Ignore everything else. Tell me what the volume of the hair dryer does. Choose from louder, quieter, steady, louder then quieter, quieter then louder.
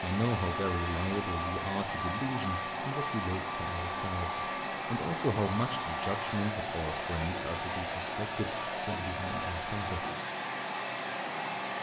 steady.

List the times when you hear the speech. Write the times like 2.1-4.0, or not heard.
0.0-10.1.